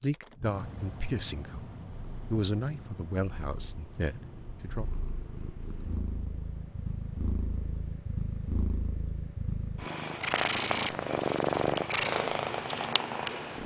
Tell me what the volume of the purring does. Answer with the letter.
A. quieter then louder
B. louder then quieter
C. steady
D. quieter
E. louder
E.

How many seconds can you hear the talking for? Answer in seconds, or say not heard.
5 s.